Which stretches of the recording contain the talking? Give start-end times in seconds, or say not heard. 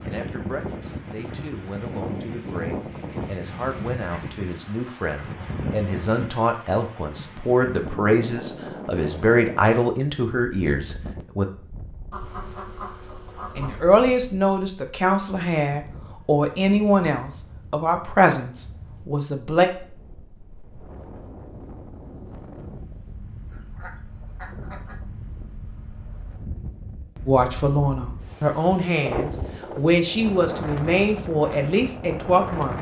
0.0-11.4, 13.6-19.7, 27.2-32.7.